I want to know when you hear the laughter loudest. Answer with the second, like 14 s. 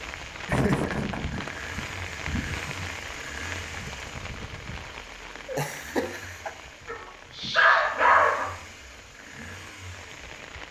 1 s.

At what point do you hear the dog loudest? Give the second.
8 s.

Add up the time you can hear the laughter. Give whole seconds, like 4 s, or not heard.
2 s.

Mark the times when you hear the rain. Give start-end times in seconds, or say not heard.
0.0-10.6.